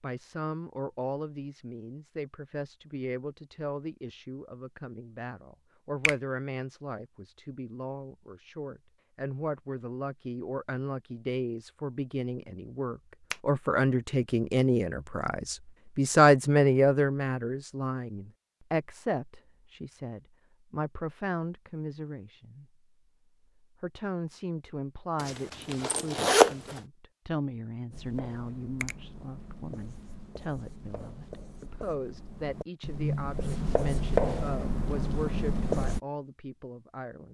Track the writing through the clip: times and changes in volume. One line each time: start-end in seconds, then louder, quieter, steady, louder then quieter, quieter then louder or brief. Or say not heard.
27.9-36.0 louder.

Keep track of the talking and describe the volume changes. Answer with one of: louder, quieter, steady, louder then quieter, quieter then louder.
louder then quieter.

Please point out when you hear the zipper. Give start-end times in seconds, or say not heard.
25.2-26.8.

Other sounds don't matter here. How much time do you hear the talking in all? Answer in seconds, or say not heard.
36 s.